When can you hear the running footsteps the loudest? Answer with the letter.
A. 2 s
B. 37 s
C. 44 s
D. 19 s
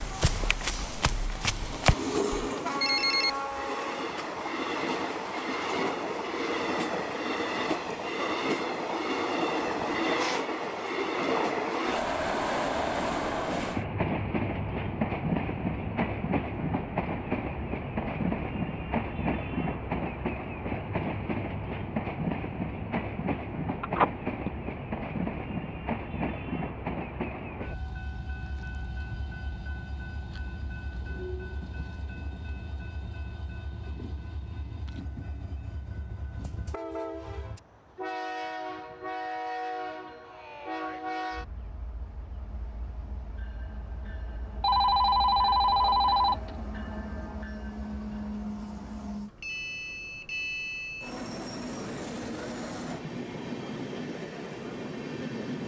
A.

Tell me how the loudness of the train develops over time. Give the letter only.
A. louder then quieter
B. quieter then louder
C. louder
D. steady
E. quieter
E.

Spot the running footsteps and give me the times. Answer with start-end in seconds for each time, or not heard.
0.0-2.5.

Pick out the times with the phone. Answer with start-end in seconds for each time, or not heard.
2.8-3.6, 23.8-24.5, 44.6-46.5.